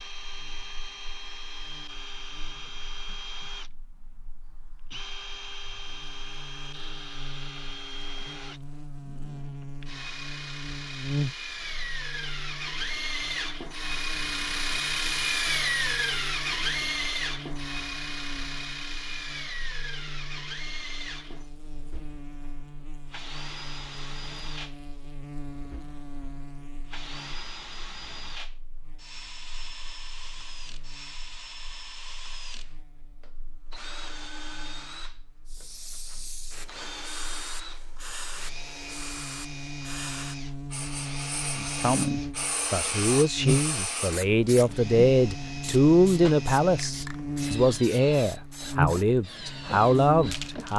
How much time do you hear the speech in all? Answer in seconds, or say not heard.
9 s.